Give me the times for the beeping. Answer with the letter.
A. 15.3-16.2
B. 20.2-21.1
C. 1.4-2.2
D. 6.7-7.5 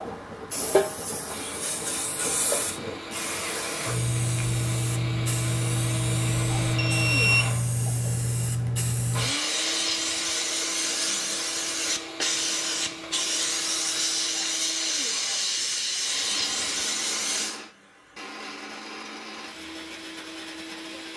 D.